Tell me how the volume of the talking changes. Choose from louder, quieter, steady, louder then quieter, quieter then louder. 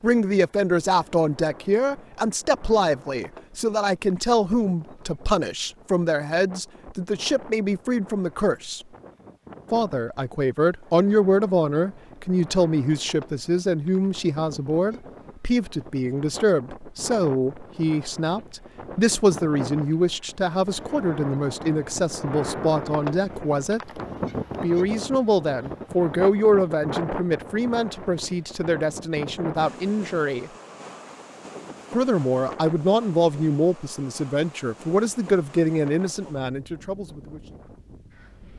steady.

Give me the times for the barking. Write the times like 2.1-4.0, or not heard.
not heard.